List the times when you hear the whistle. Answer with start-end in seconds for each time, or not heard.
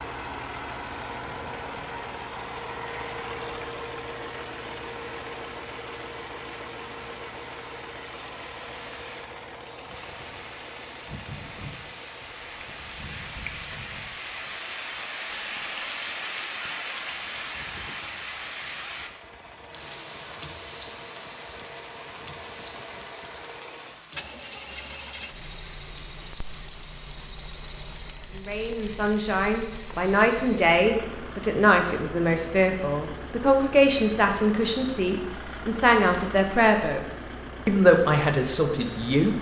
not heard.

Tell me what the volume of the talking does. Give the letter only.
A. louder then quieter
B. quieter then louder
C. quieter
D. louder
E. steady
E.